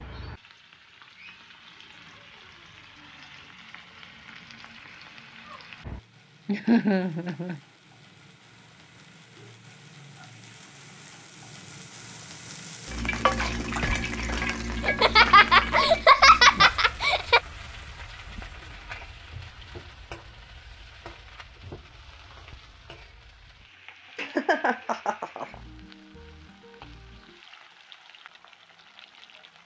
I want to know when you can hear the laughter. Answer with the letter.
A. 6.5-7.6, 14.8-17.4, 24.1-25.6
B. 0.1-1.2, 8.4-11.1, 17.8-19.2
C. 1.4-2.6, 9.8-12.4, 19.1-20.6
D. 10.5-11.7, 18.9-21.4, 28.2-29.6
A.